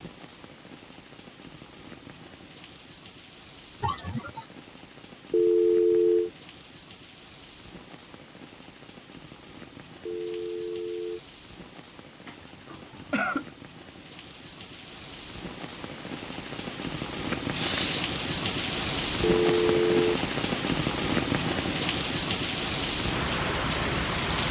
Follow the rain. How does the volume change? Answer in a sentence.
The loudness of the rain goes up.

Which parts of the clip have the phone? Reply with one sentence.
You can hear the phone from 5.3 to 6.3 s, from 10.1 to 11.2 s and from 19.2 to 20.2 s.